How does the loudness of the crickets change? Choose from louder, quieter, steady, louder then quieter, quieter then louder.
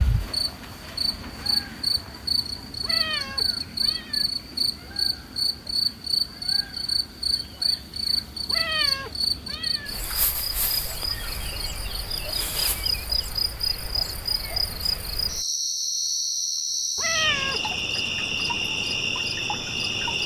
steady.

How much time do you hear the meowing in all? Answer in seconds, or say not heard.
4 s.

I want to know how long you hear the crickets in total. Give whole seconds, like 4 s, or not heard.
20 s.